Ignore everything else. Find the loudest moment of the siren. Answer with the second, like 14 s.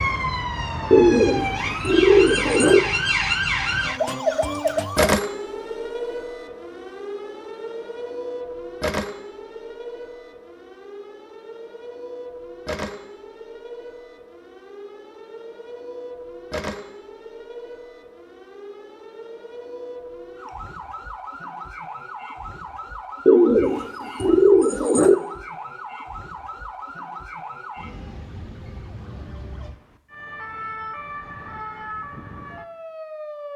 5 s.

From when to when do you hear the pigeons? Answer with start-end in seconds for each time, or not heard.
0.9-2.8, 23.2-25.1.